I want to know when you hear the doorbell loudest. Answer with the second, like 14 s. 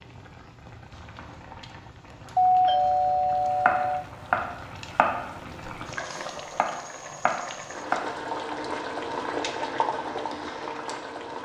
3 s.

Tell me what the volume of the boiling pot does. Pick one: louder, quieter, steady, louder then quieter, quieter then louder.
louder.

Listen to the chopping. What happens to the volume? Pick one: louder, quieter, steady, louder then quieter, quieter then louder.
quieter then louder.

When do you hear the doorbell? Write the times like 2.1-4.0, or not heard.
2.4-4.0.